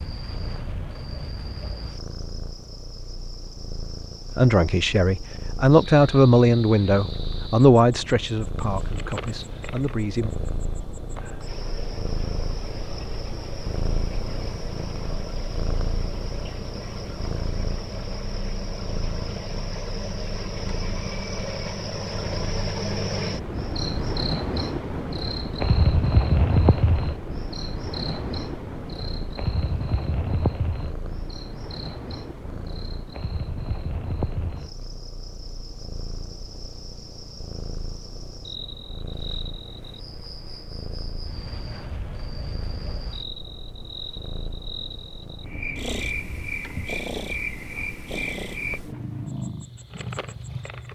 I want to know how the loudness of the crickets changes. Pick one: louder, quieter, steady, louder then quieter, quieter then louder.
louder then quieter.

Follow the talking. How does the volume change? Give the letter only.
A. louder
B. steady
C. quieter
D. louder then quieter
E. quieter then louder
C.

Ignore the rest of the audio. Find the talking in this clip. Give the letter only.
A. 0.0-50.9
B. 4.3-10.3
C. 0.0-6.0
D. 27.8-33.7
B.